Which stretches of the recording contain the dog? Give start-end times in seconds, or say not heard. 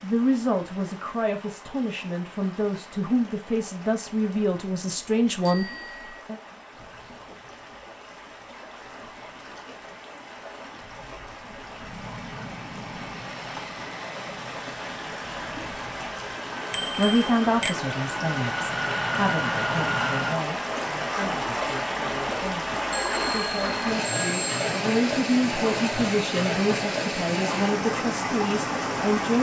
not heard.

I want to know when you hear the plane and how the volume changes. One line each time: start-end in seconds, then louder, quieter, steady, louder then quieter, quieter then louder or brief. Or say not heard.
11.8-20.4 louder.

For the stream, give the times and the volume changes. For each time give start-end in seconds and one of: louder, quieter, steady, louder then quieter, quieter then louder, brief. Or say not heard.
0.0-29.3 louder.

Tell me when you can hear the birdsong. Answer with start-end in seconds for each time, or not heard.
not heard.